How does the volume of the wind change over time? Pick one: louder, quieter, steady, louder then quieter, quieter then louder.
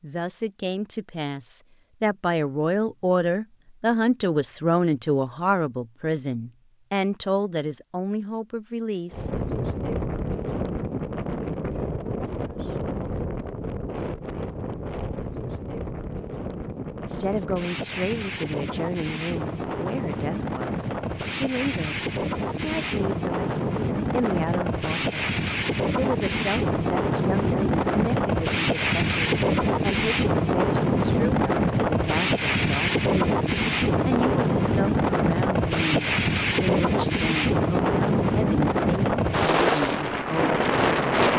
louder.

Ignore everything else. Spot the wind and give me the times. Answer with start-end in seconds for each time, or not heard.
9.1-41.3.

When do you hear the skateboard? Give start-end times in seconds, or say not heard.
not heard.